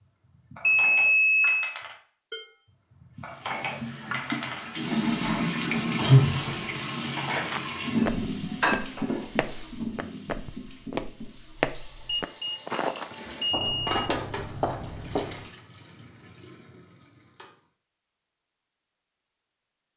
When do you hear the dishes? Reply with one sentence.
You can hear the dishes from 0.0 to 9.6 s.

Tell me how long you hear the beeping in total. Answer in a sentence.
The beeping can be heard for 3 seconds in total.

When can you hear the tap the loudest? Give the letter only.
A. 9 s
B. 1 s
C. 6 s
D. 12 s
C.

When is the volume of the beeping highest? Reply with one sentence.
The loudest moment of the beeping is at 1 second.